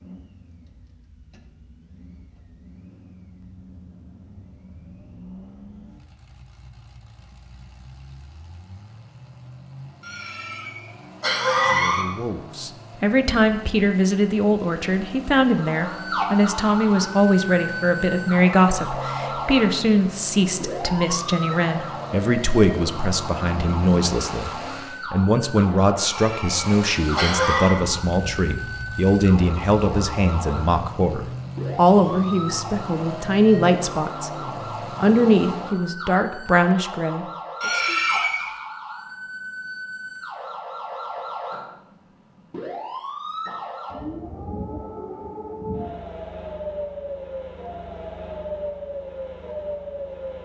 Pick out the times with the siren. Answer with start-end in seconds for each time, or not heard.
15.4-50.3.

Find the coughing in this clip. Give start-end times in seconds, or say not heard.
10.0-12.1, 25.9-27.8, 37.6-38.5.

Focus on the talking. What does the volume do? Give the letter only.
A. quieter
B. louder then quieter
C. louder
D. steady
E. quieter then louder
D.